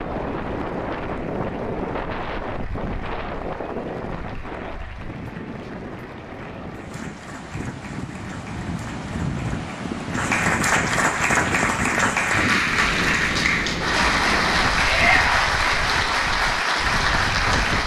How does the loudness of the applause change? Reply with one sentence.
The volume of the applause goes up.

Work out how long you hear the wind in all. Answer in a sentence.
The wind can be heard for 18 seconds in total.